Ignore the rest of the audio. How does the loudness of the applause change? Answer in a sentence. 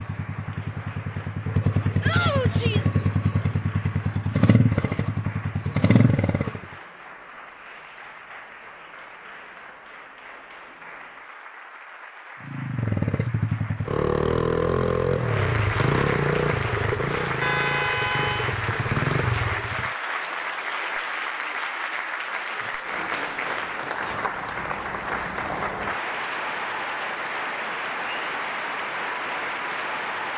The loudness of the applause goes up.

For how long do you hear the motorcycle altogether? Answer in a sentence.
You can hear the motorcycle for 14 seconds altogether.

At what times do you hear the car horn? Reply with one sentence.
The car horn can be heard from 17.4 to 18.6 s.